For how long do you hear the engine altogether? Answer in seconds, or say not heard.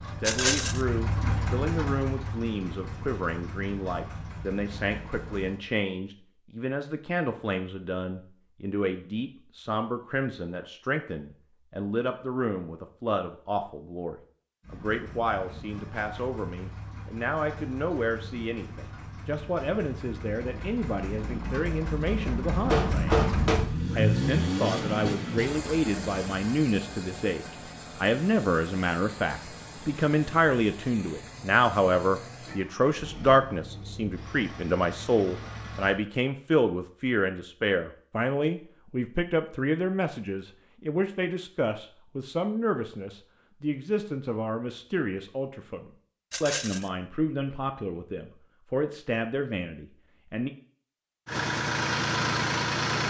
29 s.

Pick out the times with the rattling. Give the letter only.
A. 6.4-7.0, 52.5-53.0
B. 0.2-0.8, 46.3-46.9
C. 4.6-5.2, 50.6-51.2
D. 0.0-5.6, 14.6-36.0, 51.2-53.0
B.